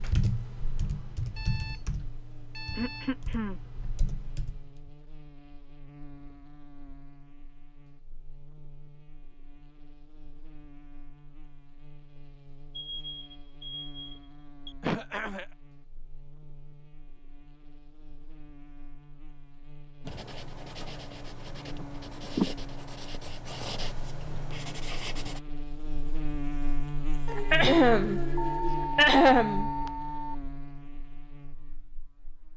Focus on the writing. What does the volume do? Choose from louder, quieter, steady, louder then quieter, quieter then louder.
louder then quieter.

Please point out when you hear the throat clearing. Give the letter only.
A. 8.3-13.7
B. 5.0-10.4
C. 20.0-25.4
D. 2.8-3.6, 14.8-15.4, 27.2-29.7
D.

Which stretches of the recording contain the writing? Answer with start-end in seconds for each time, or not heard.
20.0-25.4.